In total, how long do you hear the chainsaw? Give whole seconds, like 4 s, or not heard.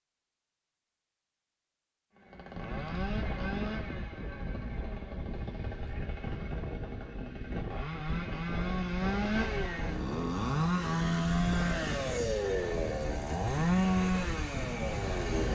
13 s.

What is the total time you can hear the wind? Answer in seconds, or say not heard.
13 s.